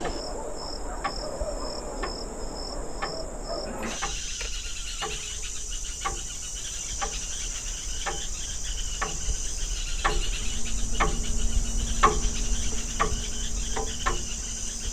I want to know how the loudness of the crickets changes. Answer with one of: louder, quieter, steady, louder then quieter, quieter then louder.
steady.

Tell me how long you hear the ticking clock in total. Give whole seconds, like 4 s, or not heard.
15 s.